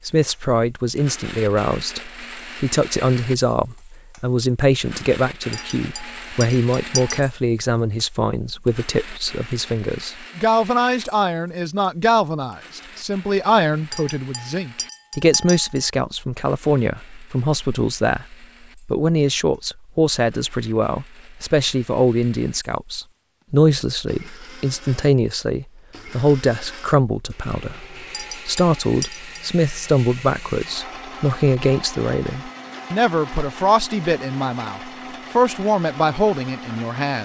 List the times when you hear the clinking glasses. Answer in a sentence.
You can hear the clinking glasses from 5.5 to 7.2 s, from 13.9 to 15.8 s and from 28.1 to 29.4 s.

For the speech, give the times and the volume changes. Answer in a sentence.
You can hear the speech from 0.1 to 37.2 s, at a steady volume.